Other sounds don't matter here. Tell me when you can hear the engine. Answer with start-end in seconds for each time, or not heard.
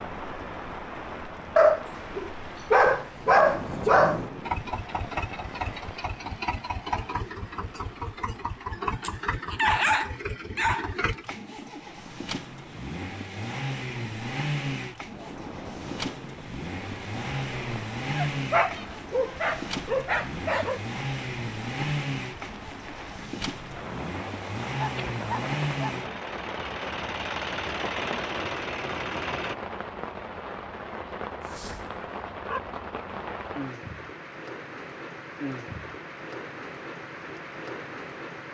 4.4-29.6.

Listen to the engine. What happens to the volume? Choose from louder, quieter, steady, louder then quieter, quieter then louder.
steady.